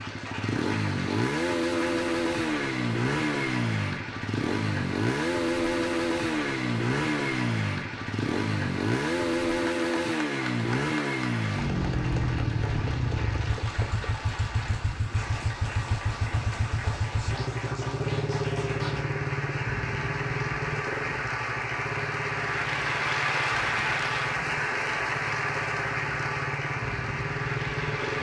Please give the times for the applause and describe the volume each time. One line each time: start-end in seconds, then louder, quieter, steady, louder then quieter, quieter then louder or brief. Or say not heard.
0.0-28.1 louder.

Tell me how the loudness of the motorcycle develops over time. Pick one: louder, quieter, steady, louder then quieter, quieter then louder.
quieter.